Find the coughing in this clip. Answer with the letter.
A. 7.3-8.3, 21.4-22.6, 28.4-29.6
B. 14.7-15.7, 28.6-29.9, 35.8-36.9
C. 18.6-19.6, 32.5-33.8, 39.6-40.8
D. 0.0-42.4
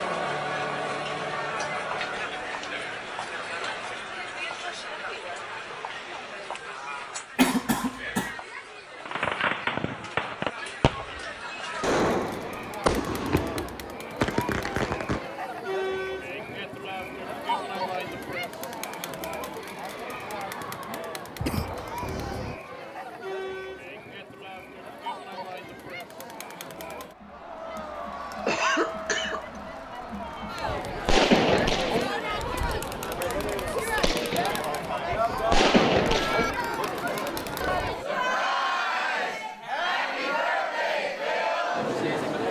A.